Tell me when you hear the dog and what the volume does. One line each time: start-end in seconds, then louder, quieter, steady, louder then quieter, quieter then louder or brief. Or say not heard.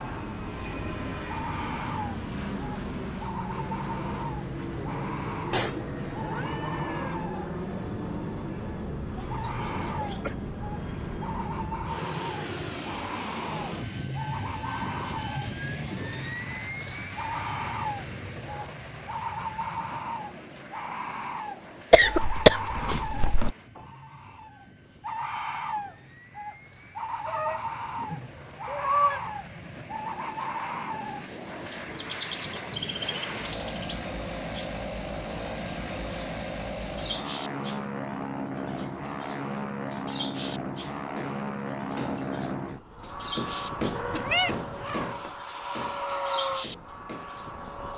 not heard.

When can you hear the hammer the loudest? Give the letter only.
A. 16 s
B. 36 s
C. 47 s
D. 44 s
D.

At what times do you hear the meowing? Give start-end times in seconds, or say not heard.
5.5-7.2, 27.2-29.2, 43.9-45.1.